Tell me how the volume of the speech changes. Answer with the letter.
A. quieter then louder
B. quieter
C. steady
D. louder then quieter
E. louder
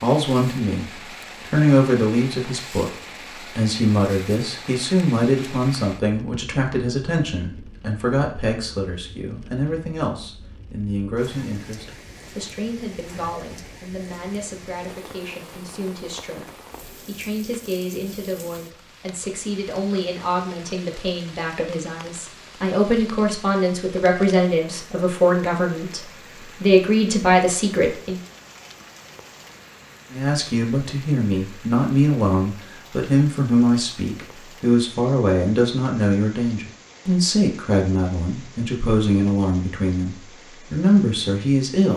A.